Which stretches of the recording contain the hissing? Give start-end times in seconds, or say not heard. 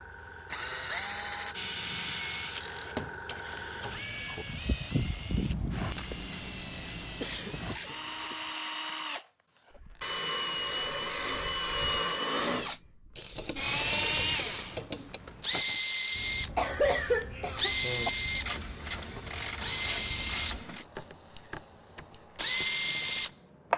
0.0-7.8, 16.1-23.7.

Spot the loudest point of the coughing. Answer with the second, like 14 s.
17 s.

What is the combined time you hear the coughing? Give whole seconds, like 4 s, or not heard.
3 s.